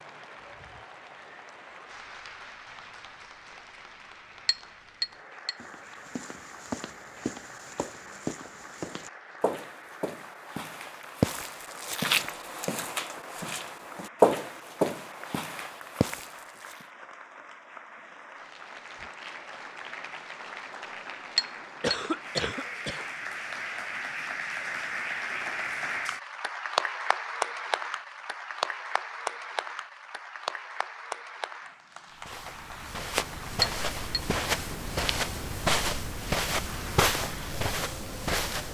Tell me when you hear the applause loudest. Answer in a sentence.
The loudest moment of the applause is at 27 seconds.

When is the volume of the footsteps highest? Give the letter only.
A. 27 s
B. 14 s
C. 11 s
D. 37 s
B.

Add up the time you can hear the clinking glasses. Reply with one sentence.
You can hear the clinking glasses for 3 seconds altogether.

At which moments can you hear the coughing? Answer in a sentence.
The coughing can be heard from 21.8 to 23.1 s.